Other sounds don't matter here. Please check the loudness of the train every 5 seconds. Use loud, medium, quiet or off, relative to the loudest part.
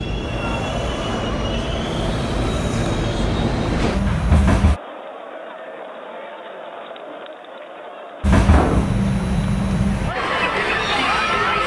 loud, loud, quiet.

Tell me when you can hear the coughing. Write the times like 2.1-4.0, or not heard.
not heard.